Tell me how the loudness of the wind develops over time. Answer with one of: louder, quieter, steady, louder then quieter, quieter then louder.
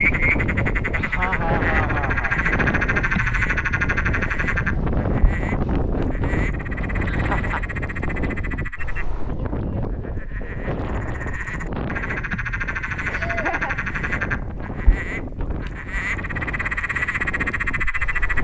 quieter.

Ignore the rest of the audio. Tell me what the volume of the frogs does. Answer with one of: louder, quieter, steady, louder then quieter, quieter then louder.
quieter then louder.